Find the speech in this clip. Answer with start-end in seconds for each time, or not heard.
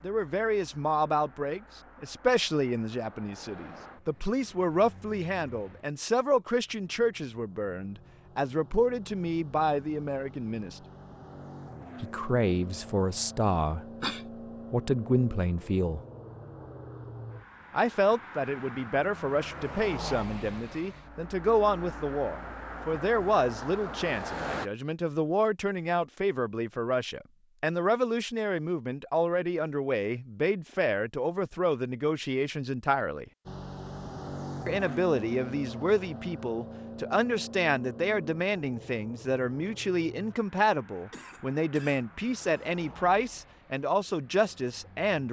0.0-10.8, 12.0-13.8, 14.7-16.0, 17.7-33.2, 34.6-45.2.